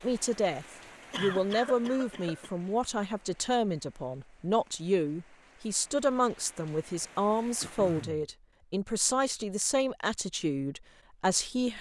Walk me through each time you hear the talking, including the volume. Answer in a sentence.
The talking can be heard from 0.0 to 11.7 s, at a steady volume.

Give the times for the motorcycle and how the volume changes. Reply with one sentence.
The motorcycle can't be heard in this clip.